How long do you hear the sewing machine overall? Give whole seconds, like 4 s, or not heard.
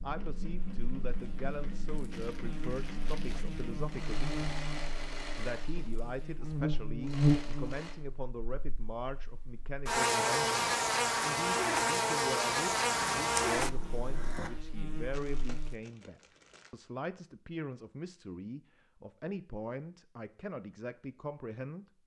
8 s.